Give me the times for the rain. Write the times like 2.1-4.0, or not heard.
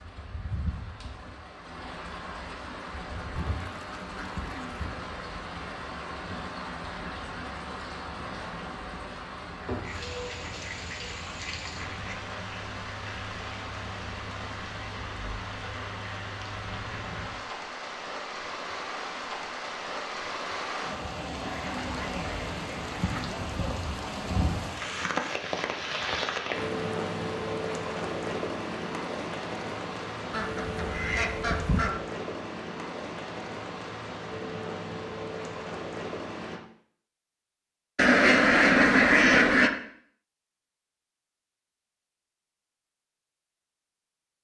0.0-36.6.